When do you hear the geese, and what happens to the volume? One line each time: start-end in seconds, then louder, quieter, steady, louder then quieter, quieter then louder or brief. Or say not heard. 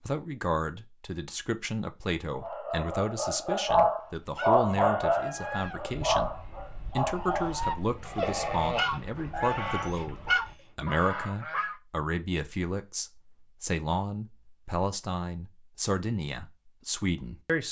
4.0-11.8 quieter then louder.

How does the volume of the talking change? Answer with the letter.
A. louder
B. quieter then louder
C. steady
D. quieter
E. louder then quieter
C.